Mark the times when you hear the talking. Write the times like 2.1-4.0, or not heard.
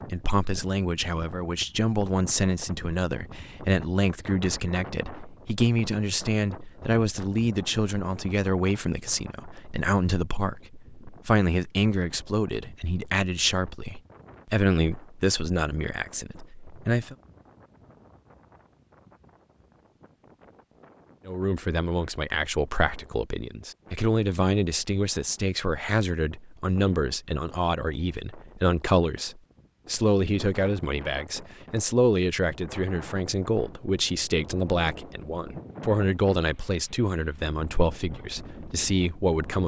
0.1-17.1, 21.2-39.6.